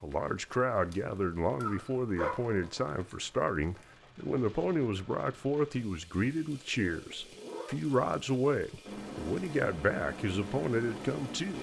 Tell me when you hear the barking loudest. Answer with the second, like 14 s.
2 s.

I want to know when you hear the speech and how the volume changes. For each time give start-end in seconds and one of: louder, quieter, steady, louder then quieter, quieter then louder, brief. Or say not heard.
0.0-11.5 steady.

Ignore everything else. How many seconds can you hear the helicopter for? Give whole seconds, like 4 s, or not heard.
3 s.